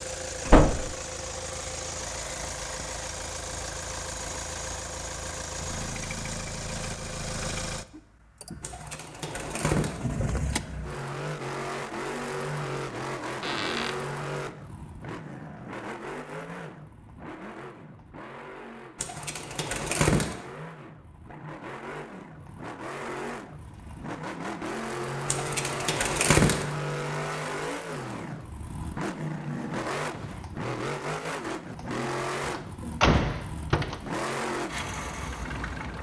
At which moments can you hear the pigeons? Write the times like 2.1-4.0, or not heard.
8.6-10.0, 18.9-20.4, 25.2-26.6.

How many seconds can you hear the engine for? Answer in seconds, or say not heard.
36 s.